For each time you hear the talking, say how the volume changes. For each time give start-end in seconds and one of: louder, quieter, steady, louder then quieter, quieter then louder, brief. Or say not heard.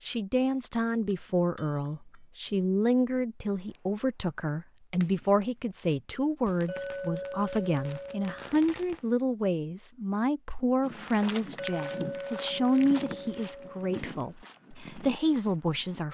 0.1-16.0 steady.